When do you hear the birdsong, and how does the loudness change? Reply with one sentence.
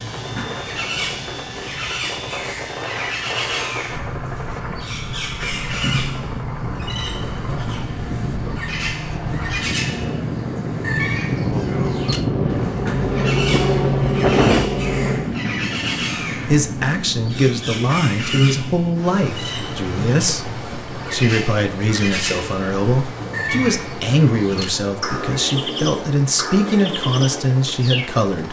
The birdsong can be heard from 0.0 to 28.1 s, at a steady volume.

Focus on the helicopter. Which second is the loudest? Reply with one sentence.
The loudest moment of the helicopter is at 14 seconds.